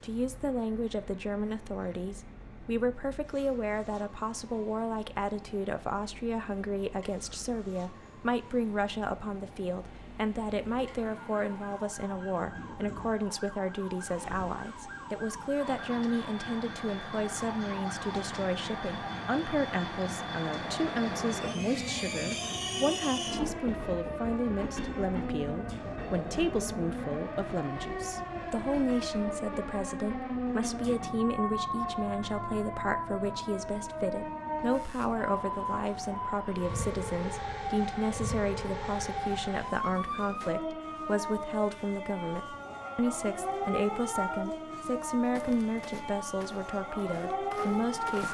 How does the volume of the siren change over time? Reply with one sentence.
The volume of the siren goes up.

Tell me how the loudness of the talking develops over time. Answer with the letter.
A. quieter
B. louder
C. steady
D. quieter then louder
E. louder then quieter
C.